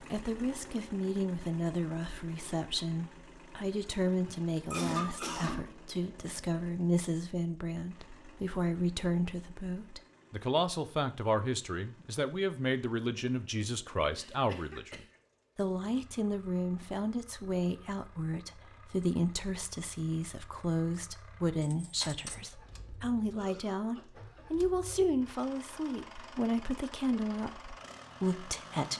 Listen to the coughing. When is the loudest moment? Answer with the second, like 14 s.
5 s.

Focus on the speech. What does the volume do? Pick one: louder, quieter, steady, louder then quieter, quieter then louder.
steady.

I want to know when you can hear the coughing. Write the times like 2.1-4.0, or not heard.
4.7-5.8, 14.2-15.1, 23.4-25.0.